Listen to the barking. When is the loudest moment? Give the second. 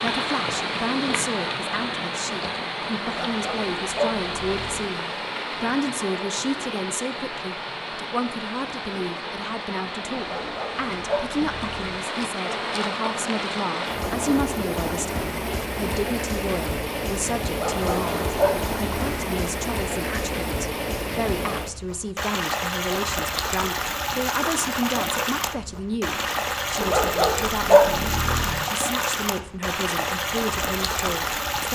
28 s.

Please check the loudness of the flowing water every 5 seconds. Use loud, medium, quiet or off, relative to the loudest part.
loud, medium, loud, loud, loud, loud, loud.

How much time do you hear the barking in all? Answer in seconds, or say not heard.
7 s.